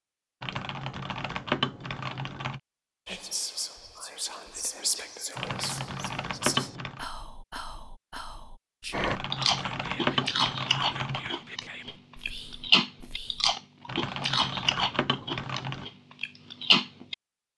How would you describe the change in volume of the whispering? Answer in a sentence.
The loudness of the whispering goes down.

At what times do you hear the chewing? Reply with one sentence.
The chewing can be heard from 8.9 to 17.1 s.